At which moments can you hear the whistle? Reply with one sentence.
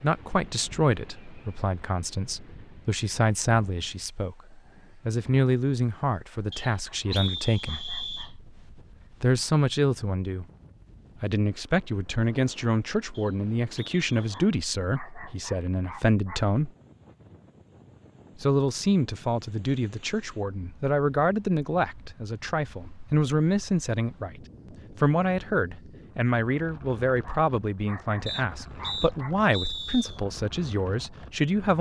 The whistle can be heard from 6.5 to 8.3 s, from 13.1 to 14.3 s and from 28.2 to 30.2 s.